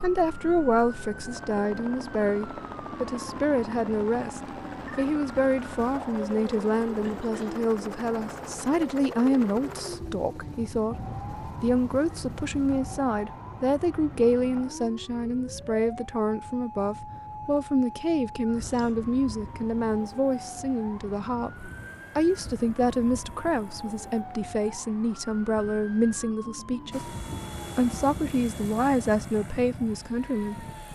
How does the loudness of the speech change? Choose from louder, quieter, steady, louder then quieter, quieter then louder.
steady.